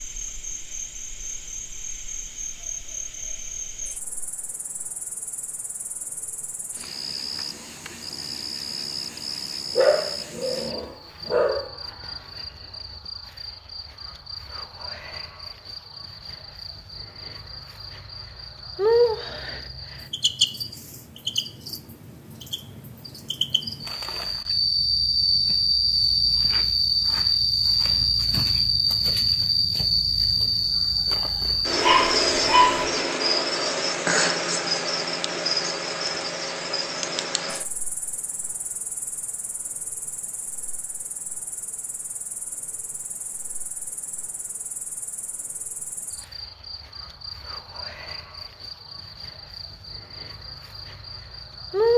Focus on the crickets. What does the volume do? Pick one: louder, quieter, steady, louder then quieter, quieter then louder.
louder then quieter.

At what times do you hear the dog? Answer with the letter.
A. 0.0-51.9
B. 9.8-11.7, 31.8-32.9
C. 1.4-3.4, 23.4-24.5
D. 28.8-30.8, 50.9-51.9
B.